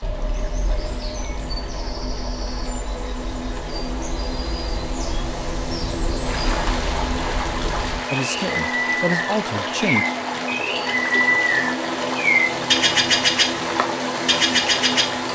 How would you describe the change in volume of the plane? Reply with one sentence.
The loudness of the plane goes up.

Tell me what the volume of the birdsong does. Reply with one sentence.
The loudness of the birdsong goes up.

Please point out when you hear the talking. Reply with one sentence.
You can hear the talking from 8.1 to 10.1 s.